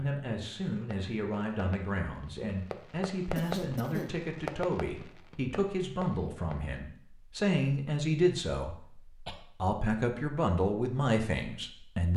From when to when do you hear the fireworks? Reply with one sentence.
You can hear the fireworks from 0.8 to 6.8 s.